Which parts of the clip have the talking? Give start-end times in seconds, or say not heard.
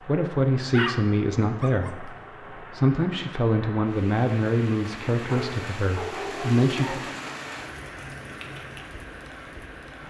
0.1-7.0.